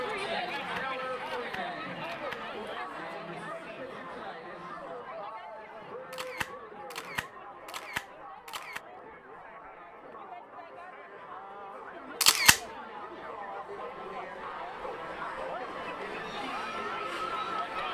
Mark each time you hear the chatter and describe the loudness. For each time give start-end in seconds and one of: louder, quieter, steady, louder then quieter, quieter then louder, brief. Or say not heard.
0.0-17.8 quieter then louder.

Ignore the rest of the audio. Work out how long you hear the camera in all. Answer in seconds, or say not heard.
5 s.